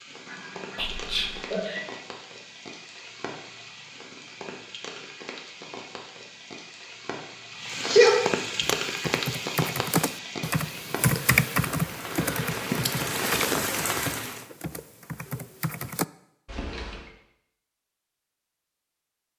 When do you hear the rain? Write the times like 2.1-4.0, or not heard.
0.0-14.4.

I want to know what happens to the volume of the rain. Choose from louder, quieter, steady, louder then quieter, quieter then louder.
louder.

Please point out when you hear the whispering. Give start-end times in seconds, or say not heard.
0.8-1.4.